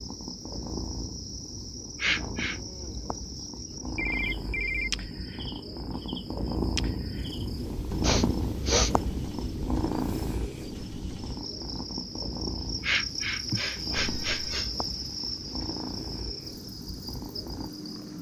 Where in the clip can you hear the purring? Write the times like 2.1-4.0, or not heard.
0.0-18.1.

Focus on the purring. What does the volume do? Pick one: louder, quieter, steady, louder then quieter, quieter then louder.
louder then quieter.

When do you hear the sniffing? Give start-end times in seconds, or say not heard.
2.0-2.6, 8.0-8.9, 12.8-14.9.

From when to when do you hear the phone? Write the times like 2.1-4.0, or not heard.
4.0-5.1, 13.9-14.7.